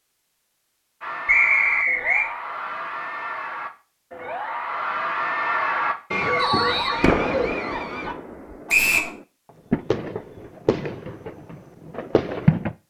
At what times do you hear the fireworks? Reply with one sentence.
You can hear the fireworks from 7.0 to 12.8 s.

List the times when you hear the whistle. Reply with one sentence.
The whistle can be heard from 1.2 to 2.3 s, from 6.3 to 7.0 s and from 8.7 to 9.1 s.